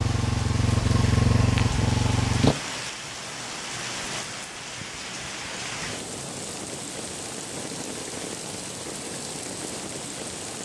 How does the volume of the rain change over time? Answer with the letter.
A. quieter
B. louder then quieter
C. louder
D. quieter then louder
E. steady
E.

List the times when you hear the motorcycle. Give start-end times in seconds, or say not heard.
0.0-2.5.